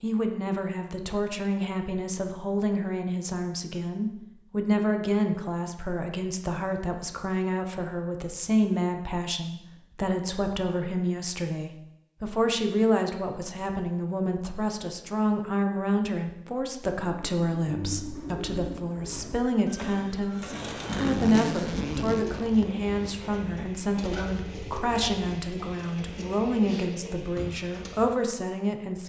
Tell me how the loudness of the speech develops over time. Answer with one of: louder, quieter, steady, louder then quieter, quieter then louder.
steady.